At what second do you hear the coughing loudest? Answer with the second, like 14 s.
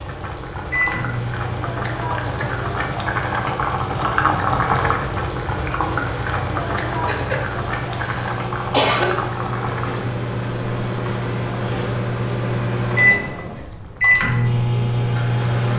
9 s.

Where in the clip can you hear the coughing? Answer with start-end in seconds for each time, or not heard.
7.0-9.1.